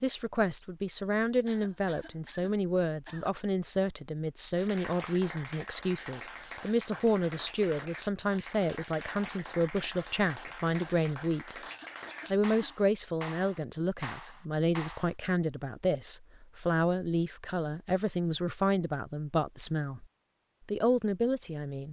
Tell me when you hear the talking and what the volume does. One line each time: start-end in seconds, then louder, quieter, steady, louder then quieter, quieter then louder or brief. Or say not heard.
0.0-11.6 steady
12.3-20.1 steady
20.6-21.8 brief.